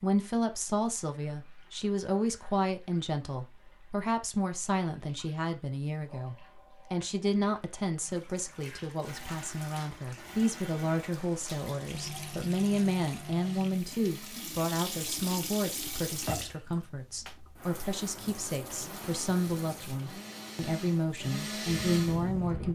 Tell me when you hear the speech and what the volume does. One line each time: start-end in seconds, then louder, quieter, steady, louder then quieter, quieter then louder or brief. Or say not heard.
0.0-22.7 steady.